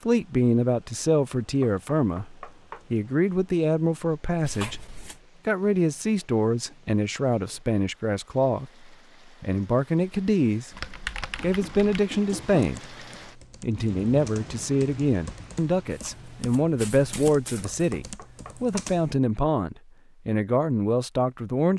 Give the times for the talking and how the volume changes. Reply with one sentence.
You can hear the talking from 0.1 to 10.8 s, at a steady volume; briefly from 11.4 to 12.8 s; and from 13.6 to 21.7 s, at a steady volume.